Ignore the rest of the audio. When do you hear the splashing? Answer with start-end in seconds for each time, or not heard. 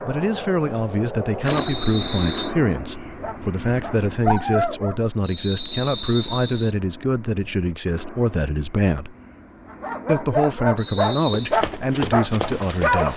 1.4-1.9.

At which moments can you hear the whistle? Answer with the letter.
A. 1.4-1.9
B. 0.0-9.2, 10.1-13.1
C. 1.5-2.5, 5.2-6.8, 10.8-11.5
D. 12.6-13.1
C.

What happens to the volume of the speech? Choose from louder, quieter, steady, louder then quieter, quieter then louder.
steady.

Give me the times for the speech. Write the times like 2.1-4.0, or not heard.
0.0-9.2, 10.1-13.1.